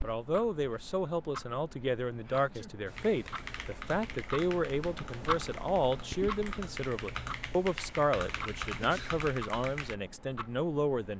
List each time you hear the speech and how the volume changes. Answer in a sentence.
The speech can be heard from 0.0 to 11.1 s, at a steady volume.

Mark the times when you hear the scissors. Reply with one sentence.
The scissors can't be heard in this clip.